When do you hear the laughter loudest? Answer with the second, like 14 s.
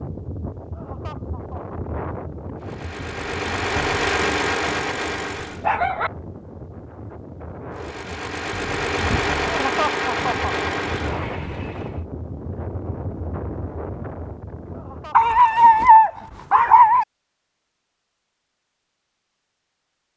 10 s.